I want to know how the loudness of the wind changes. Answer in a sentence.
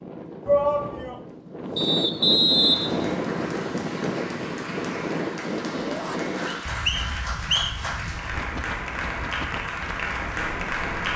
The loudness of the wind goes down.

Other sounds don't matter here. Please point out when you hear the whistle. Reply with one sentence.
The whistle can be heard from 1.8 to 3.2 s and from 6.5 to 7.9 s.